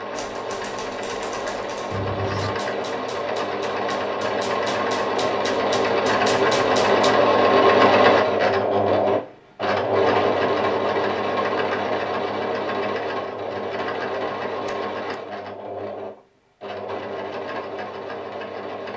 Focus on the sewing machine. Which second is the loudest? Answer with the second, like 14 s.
8 s.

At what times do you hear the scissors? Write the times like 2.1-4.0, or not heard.
1.9-2.6, 14.7-15.2.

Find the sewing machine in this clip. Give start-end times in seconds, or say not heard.
0.0-18.9.